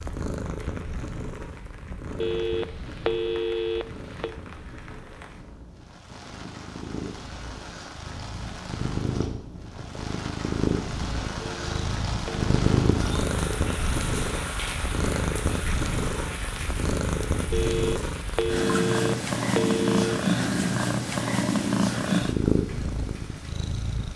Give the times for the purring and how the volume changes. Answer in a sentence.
The purring can be heard from 0.0 to 24.1 s, getting louder.